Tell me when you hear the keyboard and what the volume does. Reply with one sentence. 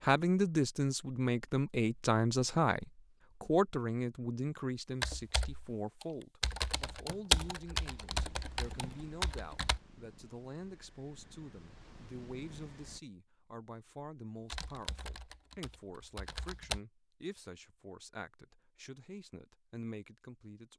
The keyboard can be heard from 5.0 to 9.8 s, getting louder then quieter; and briefly from 14.5 to 16.8 s.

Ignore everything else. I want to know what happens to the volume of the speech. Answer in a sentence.
The loudness of the speech goes down.